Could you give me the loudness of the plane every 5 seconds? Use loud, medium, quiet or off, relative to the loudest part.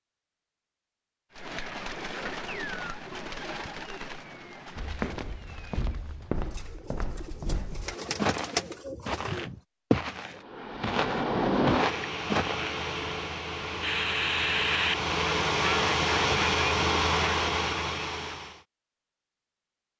off, off, loud, loud.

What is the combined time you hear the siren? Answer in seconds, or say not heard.
not heard.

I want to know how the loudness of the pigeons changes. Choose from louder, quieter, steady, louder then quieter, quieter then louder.
quieter then louder.